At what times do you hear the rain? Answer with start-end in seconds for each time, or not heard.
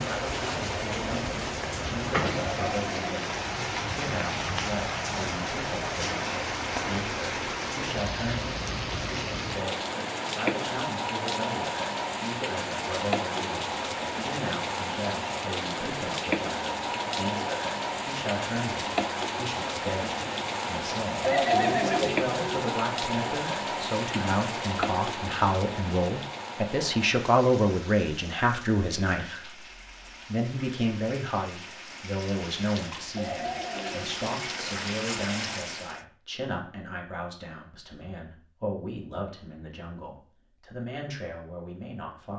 0.0-36.0.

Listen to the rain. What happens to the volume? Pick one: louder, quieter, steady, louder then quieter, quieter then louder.
quieter.